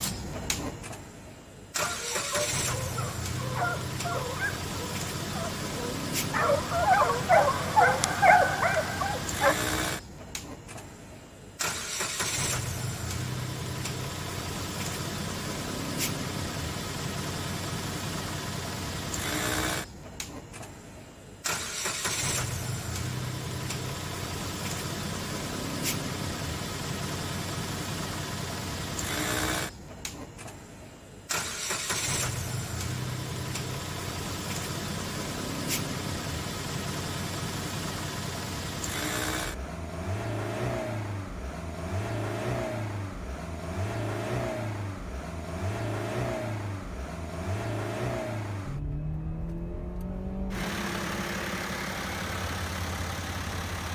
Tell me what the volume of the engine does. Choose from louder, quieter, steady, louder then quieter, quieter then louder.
steady.